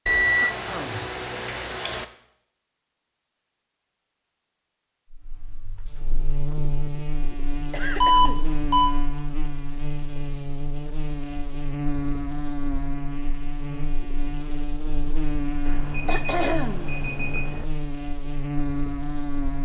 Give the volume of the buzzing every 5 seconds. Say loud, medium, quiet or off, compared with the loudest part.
off, loud, loud, loud.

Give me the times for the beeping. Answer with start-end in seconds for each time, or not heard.
0.1-2.0, 8.0-8.9, 15.7-17.6.